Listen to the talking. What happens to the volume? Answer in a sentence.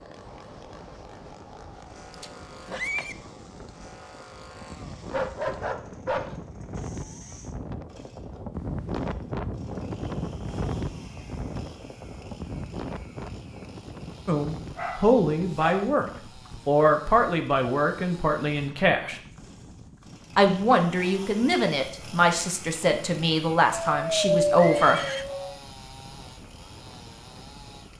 The volume of the talking stays about the same.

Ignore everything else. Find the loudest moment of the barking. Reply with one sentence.
The loudest moment of the barking is at 24 seconds.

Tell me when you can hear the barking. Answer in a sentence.
The barking can be heard from 5.1 to 6.3 s, from 14.8 to 15.8 s and from 23.7 to 25.6 s.